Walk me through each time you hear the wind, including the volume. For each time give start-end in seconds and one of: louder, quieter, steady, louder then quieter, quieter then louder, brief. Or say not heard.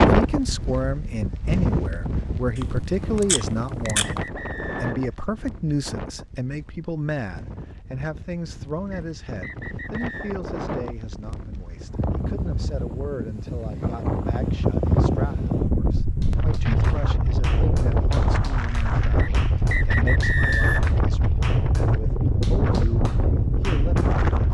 0.0-24.4 quieter then louder.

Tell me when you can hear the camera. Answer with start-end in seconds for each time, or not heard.
2.5-4.2.